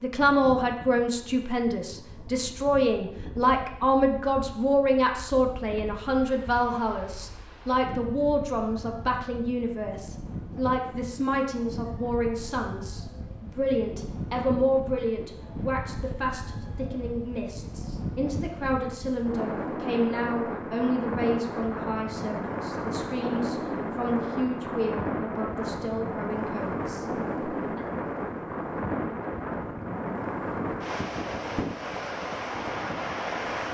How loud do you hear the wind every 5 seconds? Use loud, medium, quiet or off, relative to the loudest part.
quiet, quiet, medium, medium, loud, loud, loud.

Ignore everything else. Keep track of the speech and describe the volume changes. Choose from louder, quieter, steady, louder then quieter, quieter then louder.
quieter.